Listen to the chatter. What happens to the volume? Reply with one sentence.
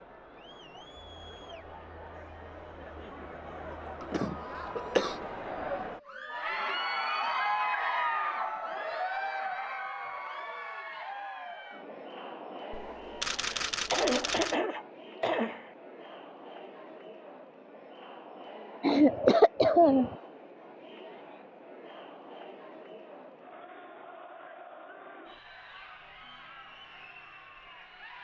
The volume of the chatter goes up, then down.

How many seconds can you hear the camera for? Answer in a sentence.
The camera can be heard for 2 seconds in total.